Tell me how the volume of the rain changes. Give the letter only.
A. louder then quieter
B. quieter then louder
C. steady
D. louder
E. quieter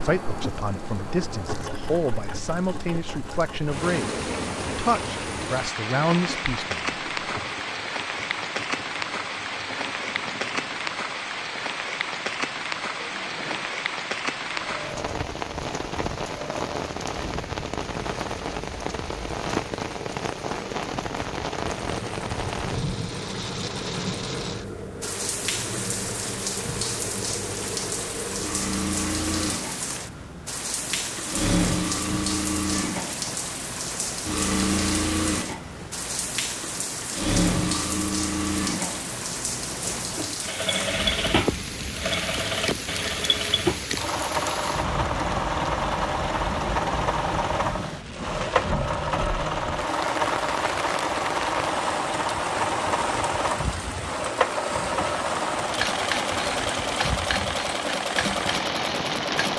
C.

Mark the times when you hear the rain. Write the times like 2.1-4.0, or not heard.
0.1-59.5.